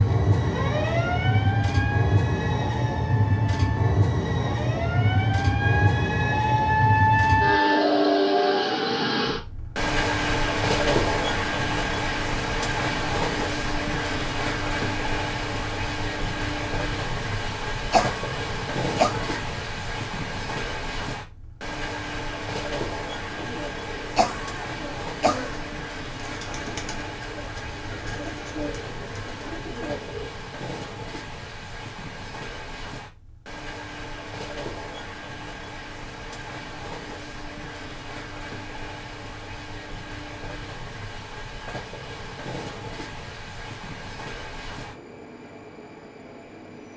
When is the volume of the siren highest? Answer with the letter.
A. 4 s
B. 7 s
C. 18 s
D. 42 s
B.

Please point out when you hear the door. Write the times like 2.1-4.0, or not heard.
not heard.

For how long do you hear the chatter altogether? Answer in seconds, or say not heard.
not heard.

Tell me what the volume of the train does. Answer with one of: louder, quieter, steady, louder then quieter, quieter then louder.
quieter.